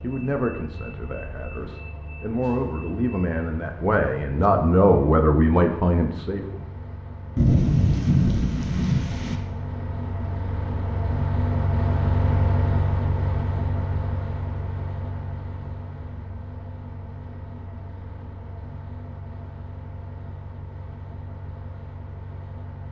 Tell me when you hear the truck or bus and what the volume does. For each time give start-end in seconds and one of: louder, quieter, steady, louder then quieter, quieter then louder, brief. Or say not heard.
0.0-22.8 louder then quieter.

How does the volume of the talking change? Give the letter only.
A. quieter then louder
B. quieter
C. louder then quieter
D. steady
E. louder
E.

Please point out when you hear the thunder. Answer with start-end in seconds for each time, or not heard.
7.3-9.3.